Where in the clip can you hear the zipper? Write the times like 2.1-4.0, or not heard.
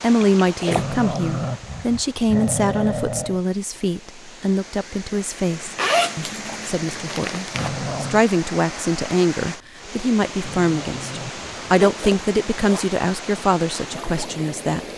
0.4-0.8, 5.8-7.7, 11.7-12.8.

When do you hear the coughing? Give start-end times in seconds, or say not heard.
not heard.